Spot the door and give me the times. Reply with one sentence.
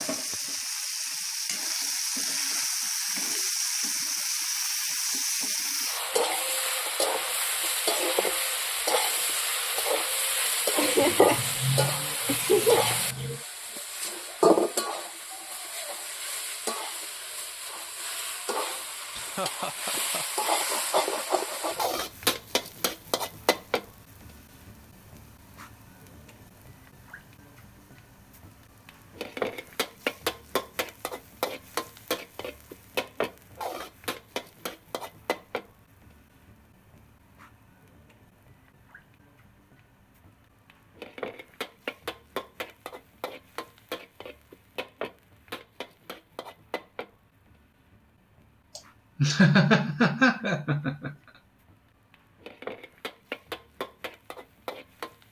You can't hear the door here.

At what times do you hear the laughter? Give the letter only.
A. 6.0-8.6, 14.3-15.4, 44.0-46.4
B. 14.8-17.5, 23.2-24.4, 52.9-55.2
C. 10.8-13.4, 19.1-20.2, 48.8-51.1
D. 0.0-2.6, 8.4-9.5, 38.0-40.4
C.